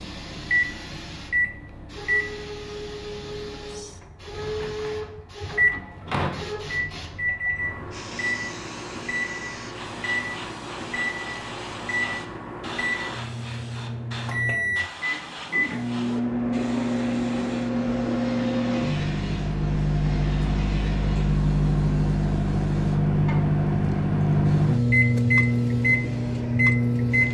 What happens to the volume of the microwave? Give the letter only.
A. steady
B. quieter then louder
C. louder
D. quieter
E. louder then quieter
C.